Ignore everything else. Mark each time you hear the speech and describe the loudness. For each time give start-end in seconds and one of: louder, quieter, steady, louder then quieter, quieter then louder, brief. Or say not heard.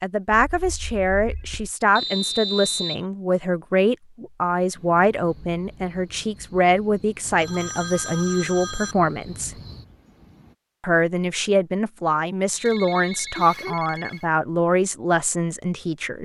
0.0-9.6 steady
10.8-16.1 steady.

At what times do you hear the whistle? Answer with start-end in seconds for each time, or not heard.
1.9-3.0, 12.5-13.4.